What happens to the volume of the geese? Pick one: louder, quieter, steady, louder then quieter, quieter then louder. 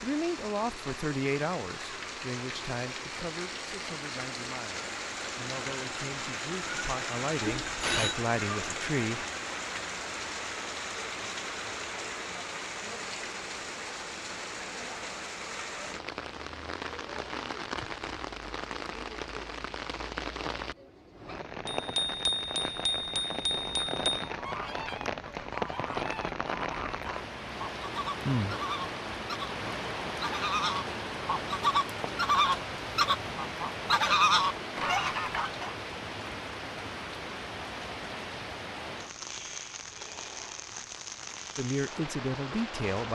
louder.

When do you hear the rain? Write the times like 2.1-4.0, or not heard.
0.0-43.1.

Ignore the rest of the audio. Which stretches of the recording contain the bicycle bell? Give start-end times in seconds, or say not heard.
7.5-8.2, 21.6-24.2.